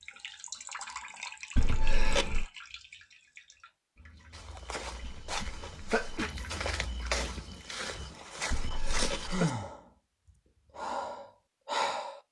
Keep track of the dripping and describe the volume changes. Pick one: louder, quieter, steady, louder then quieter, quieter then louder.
quieter then louder.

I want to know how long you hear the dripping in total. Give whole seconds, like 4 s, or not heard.
8 s.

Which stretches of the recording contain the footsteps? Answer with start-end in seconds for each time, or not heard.
4.3-9.5.